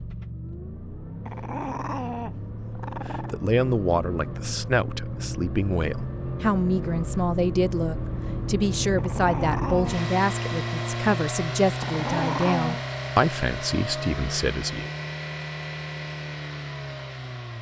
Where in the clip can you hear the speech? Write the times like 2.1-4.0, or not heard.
3.1-14.9.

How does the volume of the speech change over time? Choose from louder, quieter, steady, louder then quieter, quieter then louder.
steady.